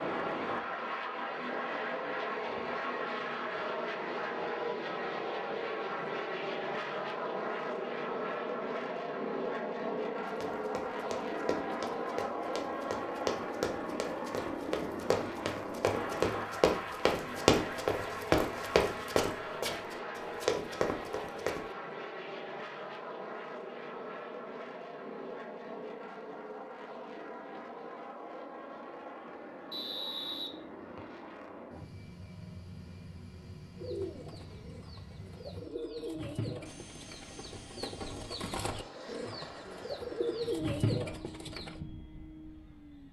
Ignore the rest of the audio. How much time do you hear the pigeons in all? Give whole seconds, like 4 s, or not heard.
8 s.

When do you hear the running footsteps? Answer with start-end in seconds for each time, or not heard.
10.2-21.6.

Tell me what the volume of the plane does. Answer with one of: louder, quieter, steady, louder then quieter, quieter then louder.
quieter.